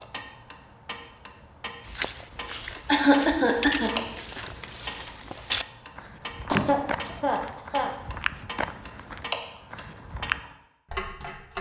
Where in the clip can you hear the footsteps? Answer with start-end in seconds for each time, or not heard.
1.9-10.4.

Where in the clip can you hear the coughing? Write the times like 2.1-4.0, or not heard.
2.9-3.9, 6.5-7.9.